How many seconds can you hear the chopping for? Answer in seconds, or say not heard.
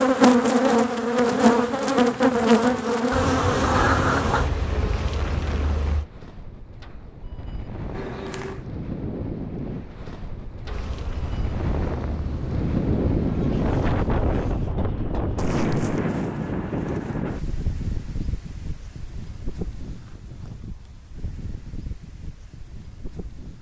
not heard.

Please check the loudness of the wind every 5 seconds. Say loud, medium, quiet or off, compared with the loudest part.
quiet, medium, loud, loud, quiet.